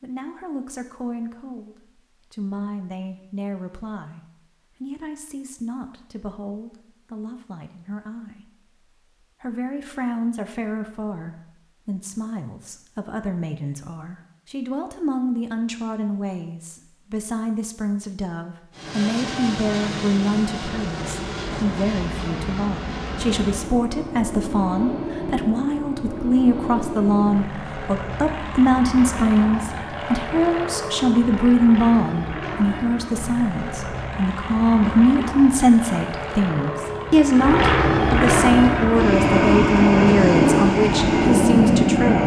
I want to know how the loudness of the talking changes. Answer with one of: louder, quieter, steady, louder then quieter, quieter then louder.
louder.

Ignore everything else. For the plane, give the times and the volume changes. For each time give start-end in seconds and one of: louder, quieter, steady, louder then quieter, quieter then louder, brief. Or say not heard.
18.7-42.2 louder.